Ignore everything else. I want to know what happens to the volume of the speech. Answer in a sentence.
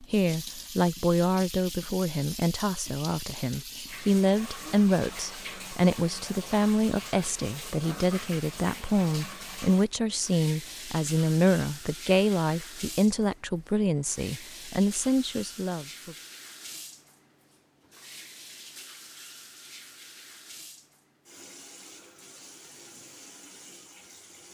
The loudness of the speech stays about the same.